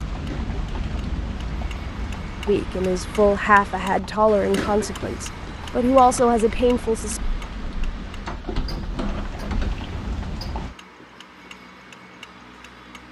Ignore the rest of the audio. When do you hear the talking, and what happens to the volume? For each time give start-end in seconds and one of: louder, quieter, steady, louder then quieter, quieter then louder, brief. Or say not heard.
2.5-7.2 quieter then louder.